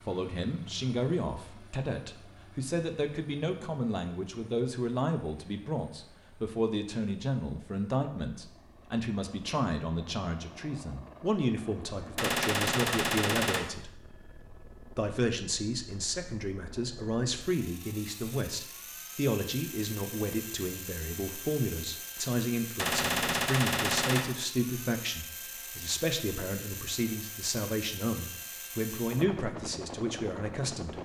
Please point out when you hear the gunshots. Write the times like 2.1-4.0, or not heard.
12.2-13.7, 22.8-24.2.